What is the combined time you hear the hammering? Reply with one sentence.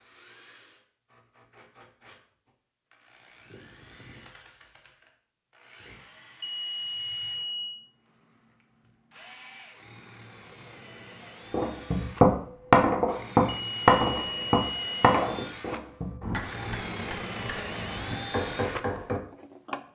The hammering can be heard for 8 seconds in total.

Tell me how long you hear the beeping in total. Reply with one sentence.
You can hear the beeping for 3 seconds altogether.